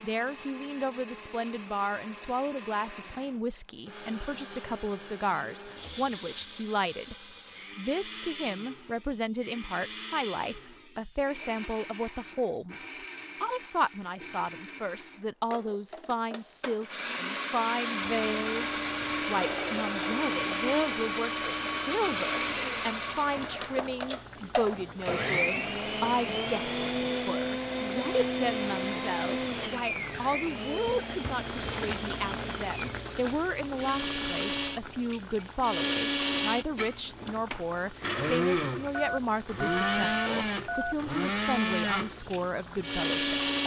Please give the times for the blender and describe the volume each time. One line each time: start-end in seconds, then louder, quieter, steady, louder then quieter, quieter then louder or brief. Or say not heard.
0.0-43.6 louder.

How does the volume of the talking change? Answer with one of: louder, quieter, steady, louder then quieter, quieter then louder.
steady.